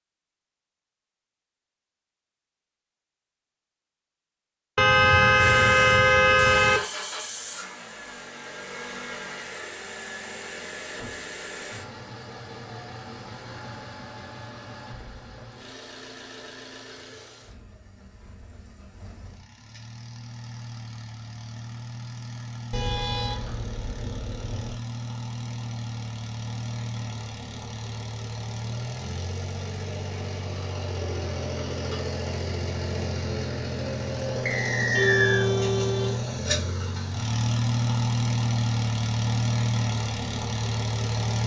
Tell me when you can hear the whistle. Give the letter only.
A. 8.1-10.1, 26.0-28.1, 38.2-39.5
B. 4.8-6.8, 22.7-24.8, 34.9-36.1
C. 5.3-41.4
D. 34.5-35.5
D.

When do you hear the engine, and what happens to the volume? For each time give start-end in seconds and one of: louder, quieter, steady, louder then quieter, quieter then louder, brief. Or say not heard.
5.3-41.4 quieter then louder.